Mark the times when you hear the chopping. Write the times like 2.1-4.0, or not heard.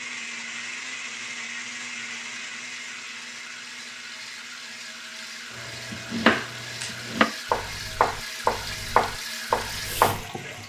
5.5-10.2.